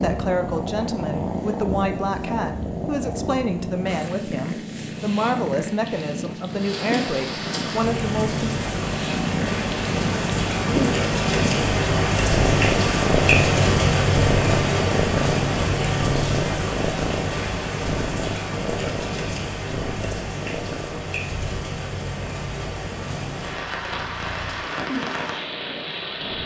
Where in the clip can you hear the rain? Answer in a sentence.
You can hear the rain from 6.5 to 26.4 s.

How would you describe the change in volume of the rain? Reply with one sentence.
The loudness of the rain goes up, then down.